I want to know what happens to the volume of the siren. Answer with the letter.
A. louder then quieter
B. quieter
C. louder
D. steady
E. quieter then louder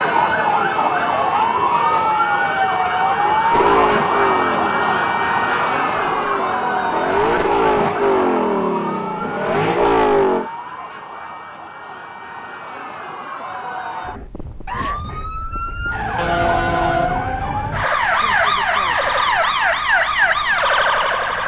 E.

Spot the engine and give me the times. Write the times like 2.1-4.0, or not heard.
3.5-10.5.